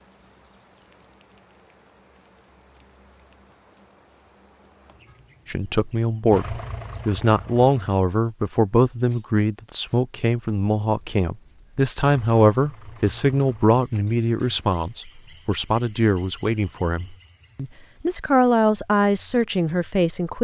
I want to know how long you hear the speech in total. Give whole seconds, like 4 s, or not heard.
15 s.